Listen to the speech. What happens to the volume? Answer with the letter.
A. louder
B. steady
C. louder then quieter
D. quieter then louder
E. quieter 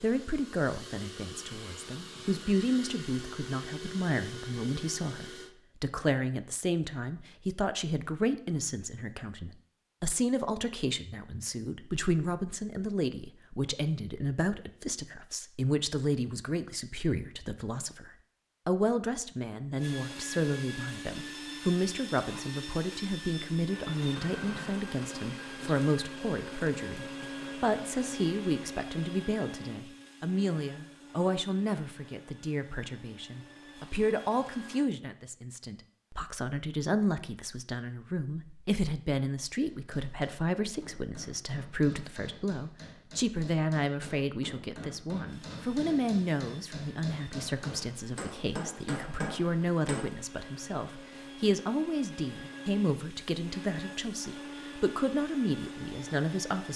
B.